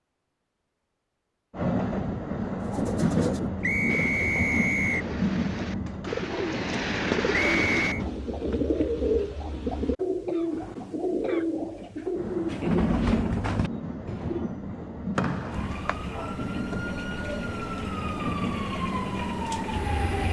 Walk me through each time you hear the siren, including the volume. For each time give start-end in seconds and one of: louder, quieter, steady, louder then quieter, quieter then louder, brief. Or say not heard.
15.5-20.2 louder.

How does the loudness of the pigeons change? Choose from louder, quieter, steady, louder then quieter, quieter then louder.
louder.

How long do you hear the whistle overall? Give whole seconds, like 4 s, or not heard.
3 s.